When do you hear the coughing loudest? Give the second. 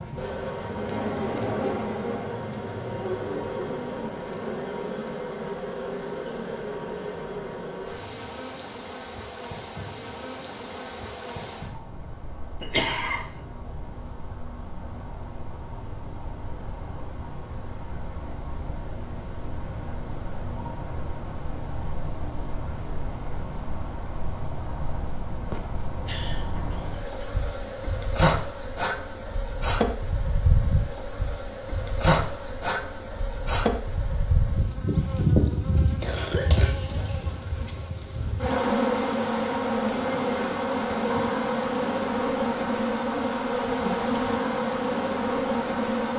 13 s.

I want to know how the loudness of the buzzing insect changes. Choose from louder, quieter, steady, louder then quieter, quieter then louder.
quieter then louder.